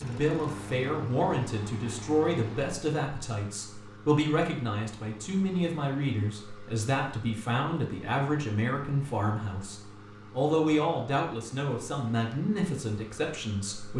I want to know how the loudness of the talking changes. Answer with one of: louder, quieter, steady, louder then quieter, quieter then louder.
steady.